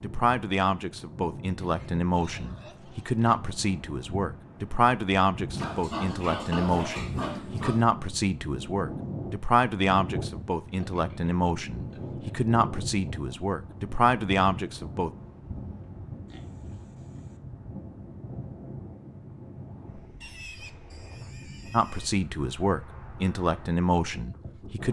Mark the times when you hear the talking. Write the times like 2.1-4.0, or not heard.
0.0-15.1, 21.7-24.8.